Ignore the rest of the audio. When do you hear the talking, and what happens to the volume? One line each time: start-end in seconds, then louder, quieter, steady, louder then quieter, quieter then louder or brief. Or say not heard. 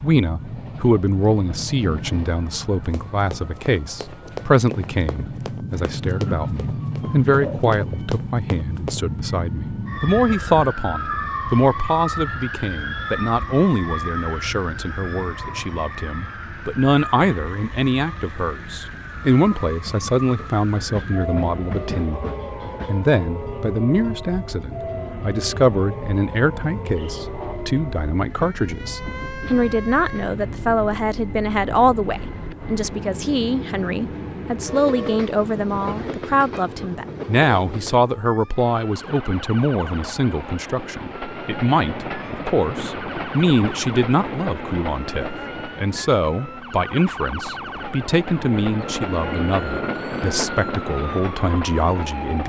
0.0-52.4 steady.